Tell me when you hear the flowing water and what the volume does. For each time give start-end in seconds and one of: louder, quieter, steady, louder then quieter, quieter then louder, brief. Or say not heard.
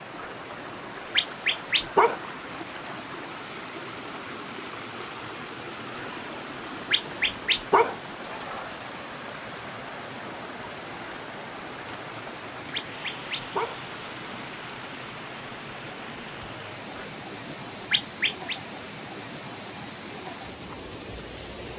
0.0-21.7 steady.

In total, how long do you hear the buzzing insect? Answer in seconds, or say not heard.
not heard.